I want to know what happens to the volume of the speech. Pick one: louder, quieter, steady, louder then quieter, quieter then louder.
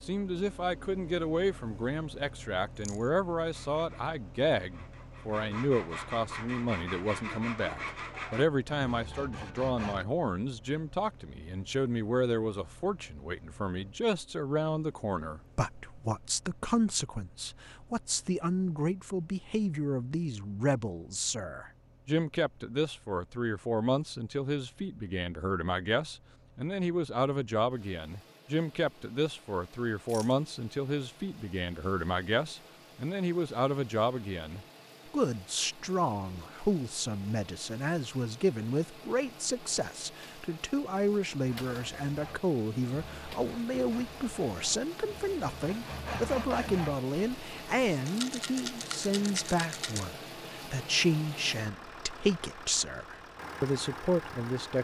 steady.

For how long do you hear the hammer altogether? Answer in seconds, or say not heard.
not heard.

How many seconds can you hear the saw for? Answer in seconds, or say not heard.
13 s.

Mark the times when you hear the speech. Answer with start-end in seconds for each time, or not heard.
0.0-54.7.